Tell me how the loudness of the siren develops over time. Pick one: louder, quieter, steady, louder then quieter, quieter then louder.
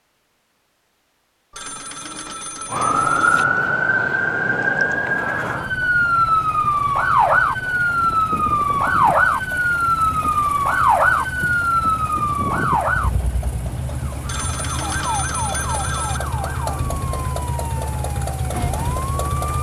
quieter.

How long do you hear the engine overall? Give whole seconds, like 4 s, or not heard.
14 s.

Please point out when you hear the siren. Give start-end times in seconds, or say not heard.
2.7-19.5.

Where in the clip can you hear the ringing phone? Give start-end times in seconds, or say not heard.
1.5-3.5, 14.2-16.2.